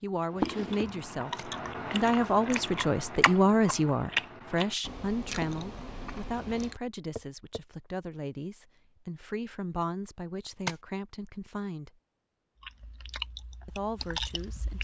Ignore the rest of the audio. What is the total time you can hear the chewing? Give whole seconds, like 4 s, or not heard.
9 s.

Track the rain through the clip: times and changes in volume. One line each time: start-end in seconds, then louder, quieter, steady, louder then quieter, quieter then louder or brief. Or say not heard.
not heard.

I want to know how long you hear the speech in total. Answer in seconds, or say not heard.
13 s.